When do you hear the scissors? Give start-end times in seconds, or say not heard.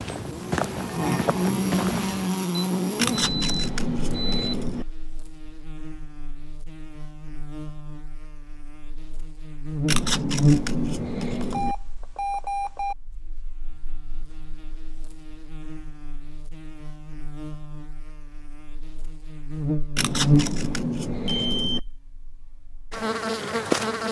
3.0-4.8, 9.8-11.8, 19.9-21.8.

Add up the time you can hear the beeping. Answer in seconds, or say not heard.
4 s.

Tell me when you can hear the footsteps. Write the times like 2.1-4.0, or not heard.
0.0-2.3.